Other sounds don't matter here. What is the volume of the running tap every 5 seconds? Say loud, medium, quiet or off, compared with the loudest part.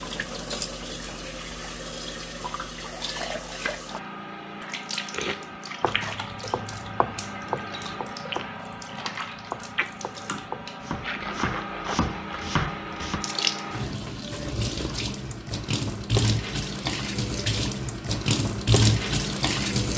medium, medium, medium, loud.